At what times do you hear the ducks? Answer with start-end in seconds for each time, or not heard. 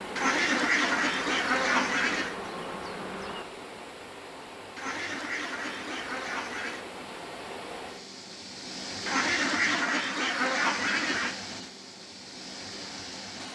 0.1-2.4, 4.8-6.8, 9.1-11.3.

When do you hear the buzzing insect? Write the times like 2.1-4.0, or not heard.
0.0-3.5.